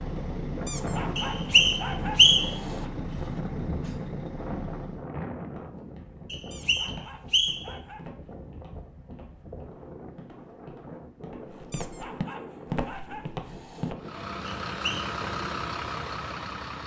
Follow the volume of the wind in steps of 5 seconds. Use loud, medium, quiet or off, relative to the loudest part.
loud, medium, medium, off.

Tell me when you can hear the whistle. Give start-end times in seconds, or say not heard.
1.1-2.5, 6.3-7.8, 14.7-15.1.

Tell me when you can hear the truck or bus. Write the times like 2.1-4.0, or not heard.
0.0-5.1, 13.9-16.8.